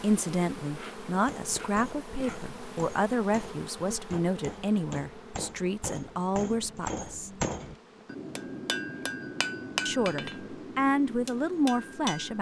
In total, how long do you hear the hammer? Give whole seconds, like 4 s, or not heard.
11 s.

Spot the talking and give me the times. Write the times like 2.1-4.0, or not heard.
0.0-7.3, 9.8-12.3.